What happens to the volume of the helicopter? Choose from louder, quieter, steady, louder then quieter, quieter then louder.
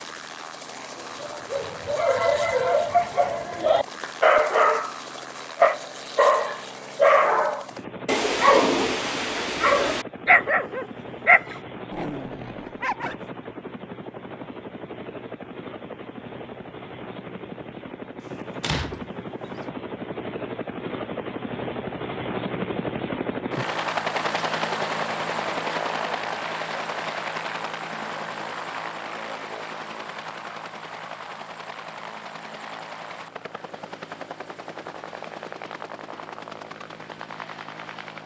louder then quieter.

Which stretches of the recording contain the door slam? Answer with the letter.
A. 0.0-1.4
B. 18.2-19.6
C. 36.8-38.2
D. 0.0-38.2
B.